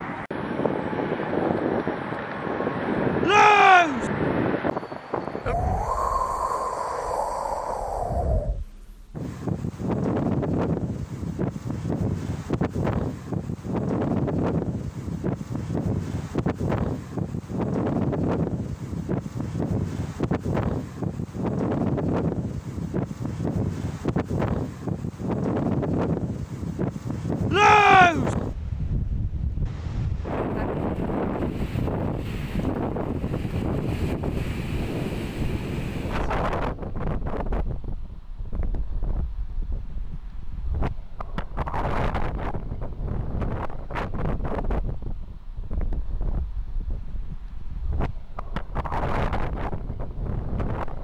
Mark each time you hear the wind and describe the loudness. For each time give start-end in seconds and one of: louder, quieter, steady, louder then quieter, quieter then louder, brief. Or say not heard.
0.0-50.9 quieter.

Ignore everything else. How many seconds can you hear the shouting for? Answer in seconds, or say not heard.
2 s.